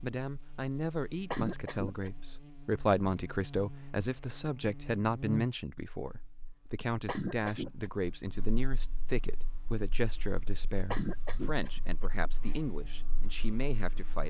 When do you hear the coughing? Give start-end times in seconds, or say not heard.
1.3-2.1, 7.0-7.9, 10.9-12.2.